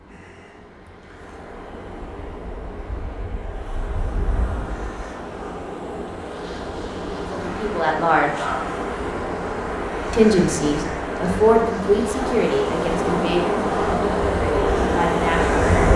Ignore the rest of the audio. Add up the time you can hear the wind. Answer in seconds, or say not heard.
16 s.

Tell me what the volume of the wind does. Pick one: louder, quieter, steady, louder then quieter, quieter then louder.
louder.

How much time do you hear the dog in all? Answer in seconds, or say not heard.
not heard.